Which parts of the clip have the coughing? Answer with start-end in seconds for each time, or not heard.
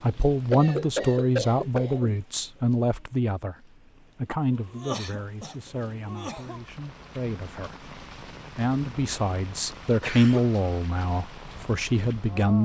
0.5-2.2, 4.5-6.6, 10.0-10.4.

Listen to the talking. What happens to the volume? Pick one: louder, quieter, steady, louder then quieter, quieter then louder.
quieter then louder.